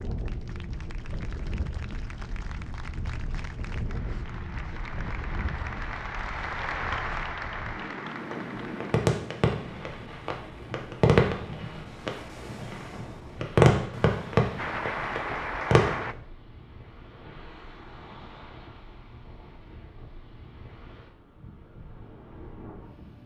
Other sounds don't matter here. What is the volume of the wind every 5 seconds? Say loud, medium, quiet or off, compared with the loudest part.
loud, loud, medium, medium, medium.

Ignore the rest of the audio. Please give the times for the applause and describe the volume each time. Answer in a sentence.
You can hear the applause from 0.0 to 9.1 s, getting louder; and briefly from 14.6 to 16.1 s.